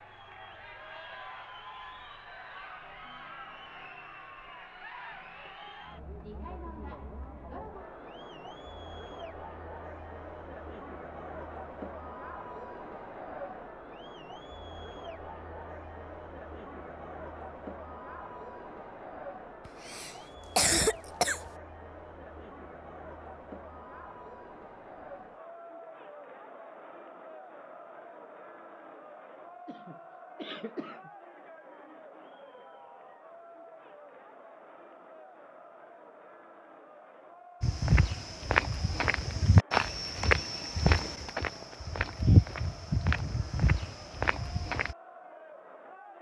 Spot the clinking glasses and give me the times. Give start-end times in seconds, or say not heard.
not heard.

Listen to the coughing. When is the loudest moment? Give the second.
21 s.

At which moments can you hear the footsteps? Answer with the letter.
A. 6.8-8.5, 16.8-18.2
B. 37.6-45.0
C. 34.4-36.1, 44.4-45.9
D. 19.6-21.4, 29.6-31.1
B.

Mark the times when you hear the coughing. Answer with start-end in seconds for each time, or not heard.
19.6-21.4, 29.6-31.1.